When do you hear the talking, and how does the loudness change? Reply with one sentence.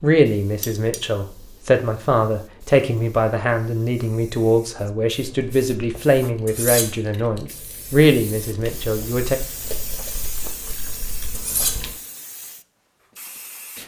The talking can be heard from 0.0 to 9.4 s, at a steady volume.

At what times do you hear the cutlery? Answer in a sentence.
You can hear the cutlery from 0.6 to 1.0 s, from 6.5 to 6.9 s and from 11.3 to 11.8 s.